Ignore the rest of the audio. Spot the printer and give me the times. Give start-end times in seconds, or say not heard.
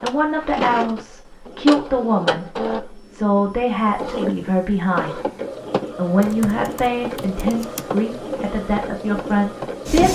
0.0-10.1.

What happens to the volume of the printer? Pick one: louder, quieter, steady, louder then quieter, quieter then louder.
steady.